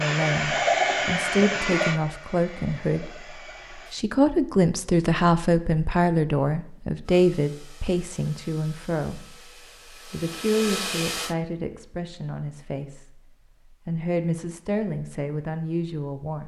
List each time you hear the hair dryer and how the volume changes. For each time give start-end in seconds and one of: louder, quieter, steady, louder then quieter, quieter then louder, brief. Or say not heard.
0.0-4.0 quieter
7.0-11.3 louder.